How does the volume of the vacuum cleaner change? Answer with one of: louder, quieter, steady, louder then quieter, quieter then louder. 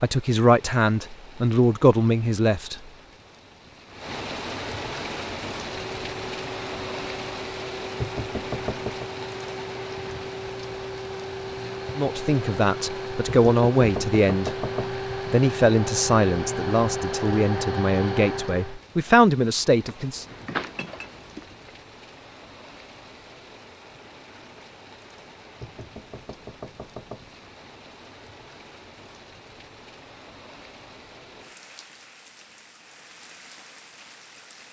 louder.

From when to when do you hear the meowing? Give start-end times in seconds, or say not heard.
20.1-21.7.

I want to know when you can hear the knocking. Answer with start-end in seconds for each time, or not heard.
8.0-9.1, 13.2-14.9, 25.6-27.3.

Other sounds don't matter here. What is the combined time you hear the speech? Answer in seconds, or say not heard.
10 s.